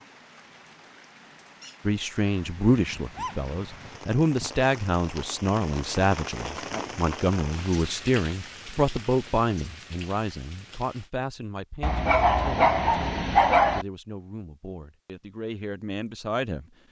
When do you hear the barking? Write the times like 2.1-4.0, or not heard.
2.6-4.6, 11.8-13.8.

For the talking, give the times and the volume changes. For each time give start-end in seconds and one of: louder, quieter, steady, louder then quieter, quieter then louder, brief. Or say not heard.
1.9-16.6 quieter.